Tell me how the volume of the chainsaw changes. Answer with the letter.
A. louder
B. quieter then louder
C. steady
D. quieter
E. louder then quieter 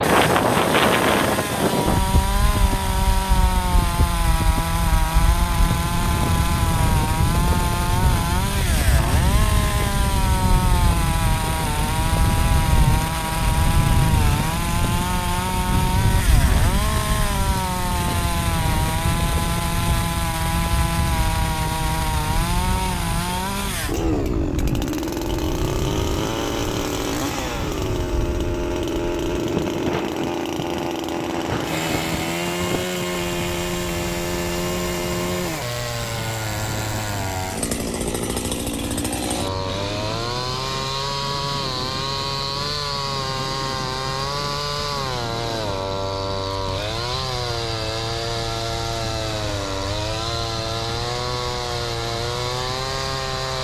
C.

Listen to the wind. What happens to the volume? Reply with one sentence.
The volume of the wind goes down.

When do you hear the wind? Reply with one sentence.
The wind can be heard from 0.0 to 53.5 s.